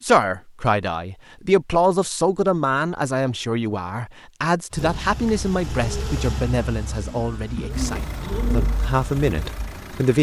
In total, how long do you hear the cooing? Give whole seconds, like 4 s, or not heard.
5 s.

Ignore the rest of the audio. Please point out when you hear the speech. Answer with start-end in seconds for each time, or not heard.
0.0-10.1.